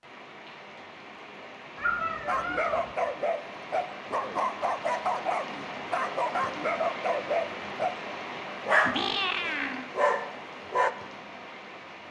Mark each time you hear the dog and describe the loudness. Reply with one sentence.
The dog can be heard from 2.2 to 8.0 s, at a steady volume; and briefly from 8.7 to 10.9 s.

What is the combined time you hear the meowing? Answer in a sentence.
The meowing can be heard for 2 seconds in total.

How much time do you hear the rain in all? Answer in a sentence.
The rain can be heard for 12 seconds in total.